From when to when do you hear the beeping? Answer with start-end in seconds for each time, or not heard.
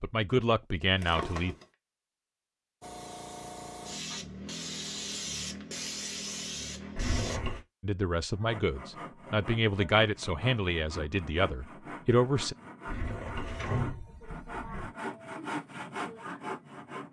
not heard.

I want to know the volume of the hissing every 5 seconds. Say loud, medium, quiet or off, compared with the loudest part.
loud, loud, off, off.